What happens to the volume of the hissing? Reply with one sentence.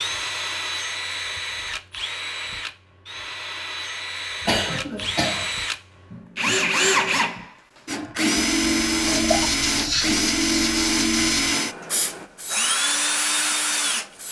The volume of the hissing goes down.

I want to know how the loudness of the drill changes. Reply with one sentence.
The volume of the drill goes up.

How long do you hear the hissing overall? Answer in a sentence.
The hissing can be heard for 5 seconds in total.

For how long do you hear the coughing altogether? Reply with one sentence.
The coughing can be heard for 2 seconds in total.